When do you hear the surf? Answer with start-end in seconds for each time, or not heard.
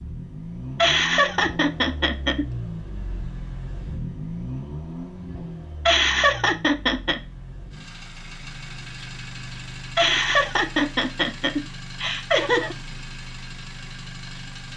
not heard.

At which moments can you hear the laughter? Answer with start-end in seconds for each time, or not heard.
0.8-2.5, 5.8-7.2, 9.9-12.8.